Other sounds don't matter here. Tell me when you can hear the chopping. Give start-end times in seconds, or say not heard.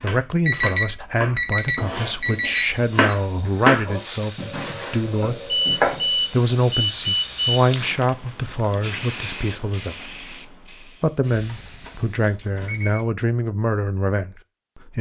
0.0-6.3.